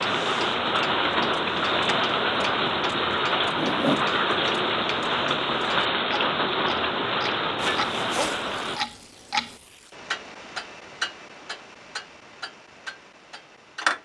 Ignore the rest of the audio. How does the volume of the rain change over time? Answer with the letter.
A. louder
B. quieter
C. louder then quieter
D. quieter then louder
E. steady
E.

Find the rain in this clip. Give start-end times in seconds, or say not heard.
0.0-8.8.